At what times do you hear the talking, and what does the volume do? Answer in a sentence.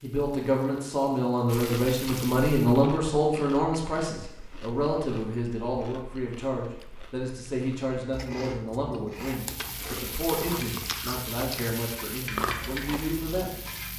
You can hear the talking from 0.0 to 13.6 s, getting quieter.